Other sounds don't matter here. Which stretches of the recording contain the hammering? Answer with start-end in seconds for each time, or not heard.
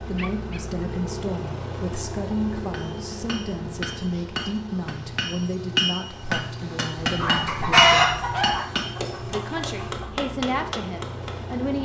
2.6-11.6.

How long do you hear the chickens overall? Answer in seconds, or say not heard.
3 s.